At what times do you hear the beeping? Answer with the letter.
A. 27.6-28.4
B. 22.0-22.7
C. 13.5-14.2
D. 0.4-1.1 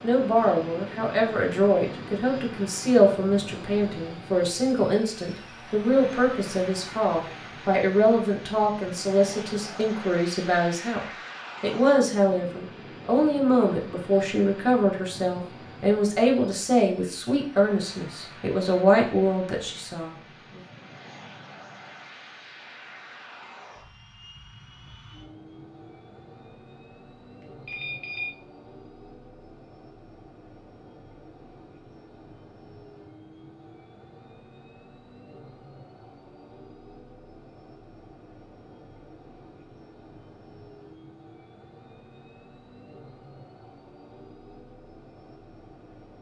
A.